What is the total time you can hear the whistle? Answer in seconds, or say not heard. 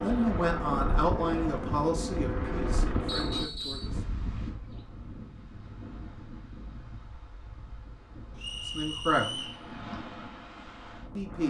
2 s.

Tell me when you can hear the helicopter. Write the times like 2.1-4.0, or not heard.
0.0-3.5.